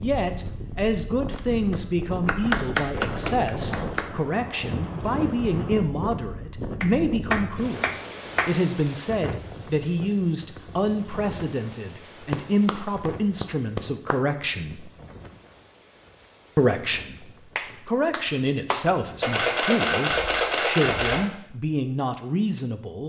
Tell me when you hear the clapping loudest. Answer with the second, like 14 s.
3 s.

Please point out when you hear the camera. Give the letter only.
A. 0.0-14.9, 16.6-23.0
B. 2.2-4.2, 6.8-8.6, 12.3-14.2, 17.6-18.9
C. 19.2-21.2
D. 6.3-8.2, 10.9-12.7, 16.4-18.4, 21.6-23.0
C.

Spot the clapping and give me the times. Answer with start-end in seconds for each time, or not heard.
2.2-4.2, 6.8-8.6, 12.3-14.2, 17.6-18.9.